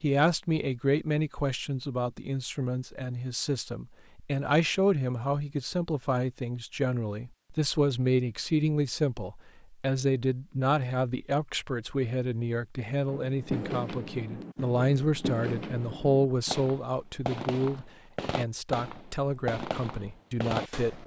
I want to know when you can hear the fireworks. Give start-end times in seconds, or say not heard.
13.1-21.0.